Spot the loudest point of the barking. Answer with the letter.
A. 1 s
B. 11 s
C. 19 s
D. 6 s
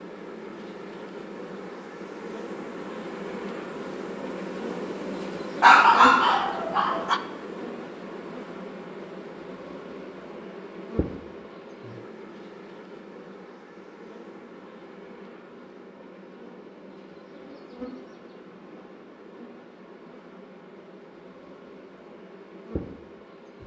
D.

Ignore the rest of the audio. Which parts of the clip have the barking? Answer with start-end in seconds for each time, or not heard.
5.6-7.2.